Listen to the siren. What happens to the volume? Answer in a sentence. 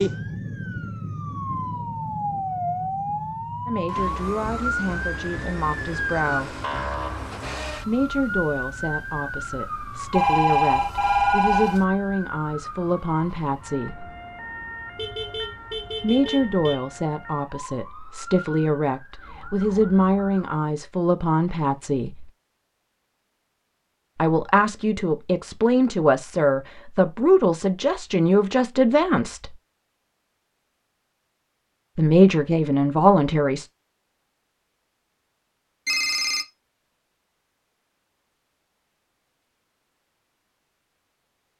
The loudness of the siren goes down.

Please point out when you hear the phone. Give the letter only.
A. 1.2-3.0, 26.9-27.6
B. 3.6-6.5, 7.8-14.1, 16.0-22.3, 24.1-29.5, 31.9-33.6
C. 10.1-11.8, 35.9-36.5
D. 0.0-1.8
C.